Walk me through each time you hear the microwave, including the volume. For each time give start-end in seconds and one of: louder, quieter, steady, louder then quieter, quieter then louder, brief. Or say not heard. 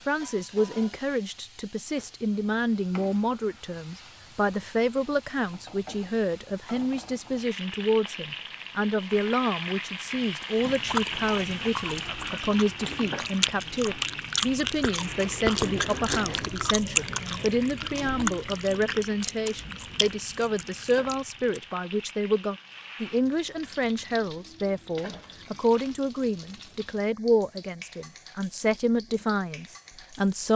not heard.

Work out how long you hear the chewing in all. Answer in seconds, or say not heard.
11 s.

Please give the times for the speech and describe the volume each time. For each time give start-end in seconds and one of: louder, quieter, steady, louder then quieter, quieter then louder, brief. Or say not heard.
0.1-30.5 steady.